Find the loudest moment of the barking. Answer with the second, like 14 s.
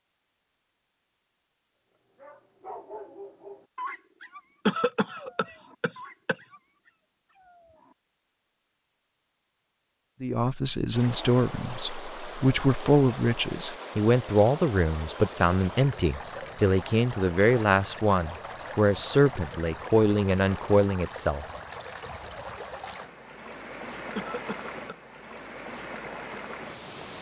4 s.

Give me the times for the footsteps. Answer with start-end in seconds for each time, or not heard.
not heard.